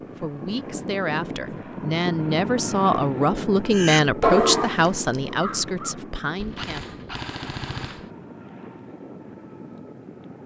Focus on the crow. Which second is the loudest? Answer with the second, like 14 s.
4 s.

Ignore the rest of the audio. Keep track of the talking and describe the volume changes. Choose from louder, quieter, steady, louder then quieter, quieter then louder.
louder then quieter.